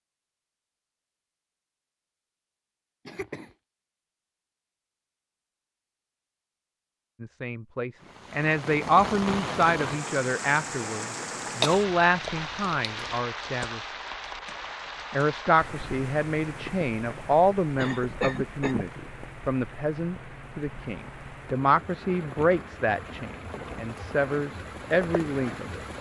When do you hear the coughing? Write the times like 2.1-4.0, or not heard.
3.0-3.5, 11.6-13.2, 17.8-18.9.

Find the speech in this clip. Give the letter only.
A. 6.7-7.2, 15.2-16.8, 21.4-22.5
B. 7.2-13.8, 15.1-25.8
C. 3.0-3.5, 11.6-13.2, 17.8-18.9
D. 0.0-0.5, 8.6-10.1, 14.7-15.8
B.